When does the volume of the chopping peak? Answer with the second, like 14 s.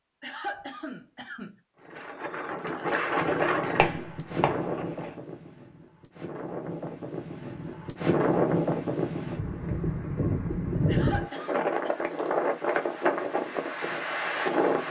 4 s.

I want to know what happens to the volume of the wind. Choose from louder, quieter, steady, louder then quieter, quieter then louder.
quieter then louder.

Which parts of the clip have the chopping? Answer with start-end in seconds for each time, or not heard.
3.2-5.2.